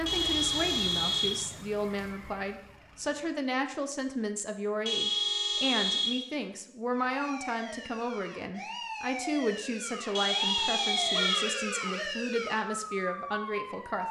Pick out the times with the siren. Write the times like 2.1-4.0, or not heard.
0.0-3.4, 6.9-14.0.